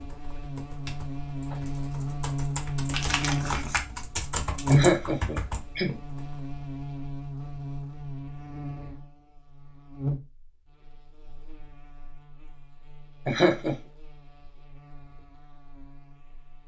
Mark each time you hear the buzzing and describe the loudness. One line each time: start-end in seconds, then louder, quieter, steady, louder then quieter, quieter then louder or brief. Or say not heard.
0.0-16.6 quieter.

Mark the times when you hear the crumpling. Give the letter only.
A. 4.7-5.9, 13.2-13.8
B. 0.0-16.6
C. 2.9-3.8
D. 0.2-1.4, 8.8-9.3
C.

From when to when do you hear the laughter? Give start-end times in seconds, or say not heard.
4.7-5.9, 13.2-13.8.